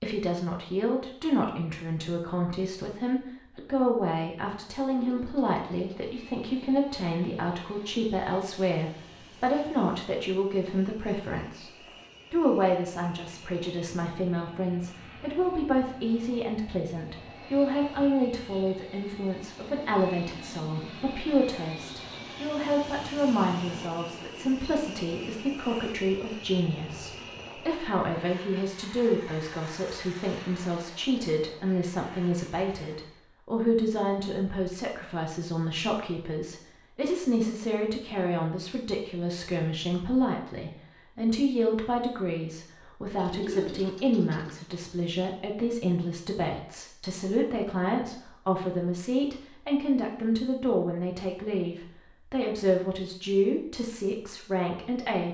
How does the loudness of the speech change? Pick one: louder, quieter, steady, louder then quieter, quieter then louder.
steady.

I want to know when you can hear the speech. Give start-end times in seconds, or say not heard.
0.0-55.2.